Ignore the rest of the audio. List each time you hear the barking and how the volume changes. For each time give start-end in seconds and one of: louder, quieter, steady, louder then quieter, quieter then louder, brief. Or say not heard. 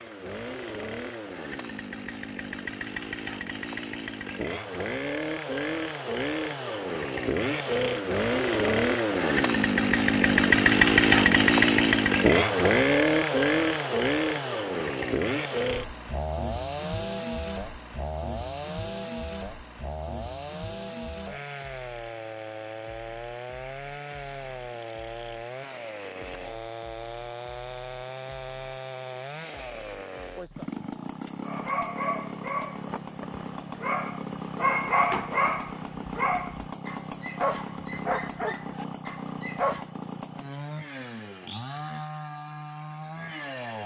31.4-39.9 louder then quieter.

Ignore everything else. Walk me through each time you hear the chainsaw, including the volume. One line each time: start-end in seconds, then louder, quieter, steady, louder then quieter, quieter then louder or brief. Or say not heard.
0.0-43.8 louder then quieter.